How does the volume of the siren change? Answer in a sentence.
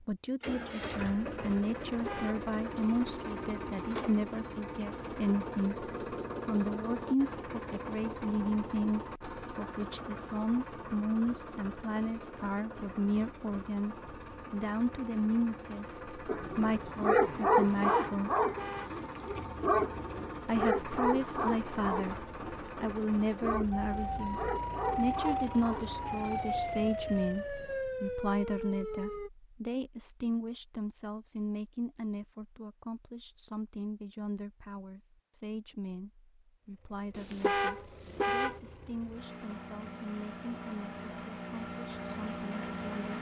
The volume of the siren stays about the same.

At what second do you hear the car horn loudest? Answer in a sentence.
The volume of the car horn peaks at 38 seconds.